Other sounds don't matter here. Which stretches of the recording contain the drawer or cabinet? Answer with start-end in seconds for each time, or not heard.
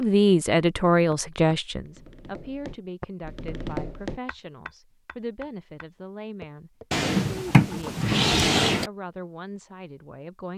6.9-8.9.